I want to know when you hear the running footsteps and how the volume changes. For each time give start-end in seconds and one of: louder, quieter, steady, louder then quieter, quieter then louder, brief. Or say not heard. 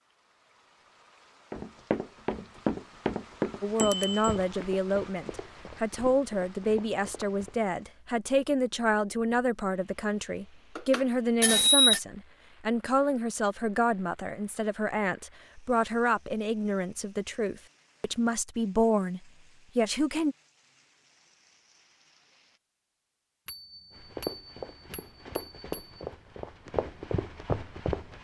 1.5-7.6 quieter
23.9-28.2 louder.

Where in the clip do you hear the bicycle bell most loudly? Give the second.
12 s.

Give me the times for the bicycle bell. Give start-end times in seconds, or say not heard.
3.8-4.3, 10.8-12.0, 23.4-25.9.